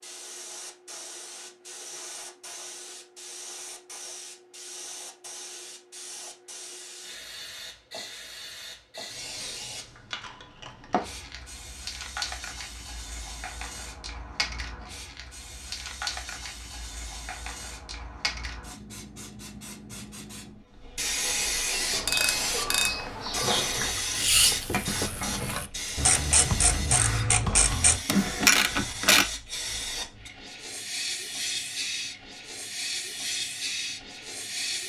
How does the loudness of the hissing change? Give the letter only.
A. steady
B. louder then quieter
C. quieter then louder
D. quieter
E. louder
E.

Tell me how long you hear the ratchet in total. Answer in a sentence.
The ratchet can be heard for 7 seconds in total.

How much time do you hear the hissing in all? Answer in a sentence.
You can hear the hissing for 35 seconds altogether.